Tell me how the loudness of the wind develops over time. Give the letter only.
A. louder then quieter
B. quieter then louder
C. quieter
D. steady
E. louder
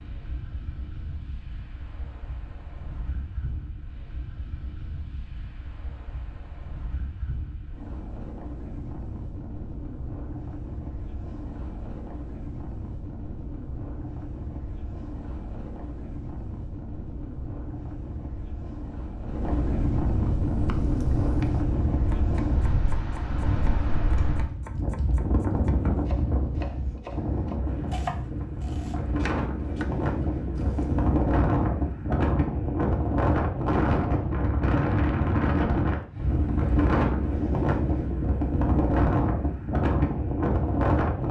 E.